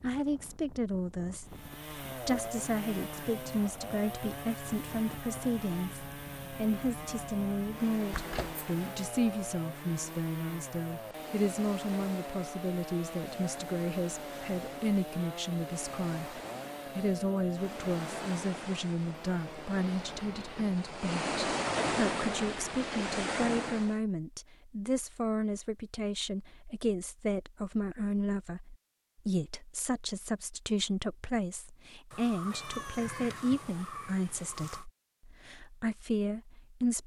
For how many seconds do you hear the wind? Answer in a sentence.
The wind can be heard for 24 seconds in total.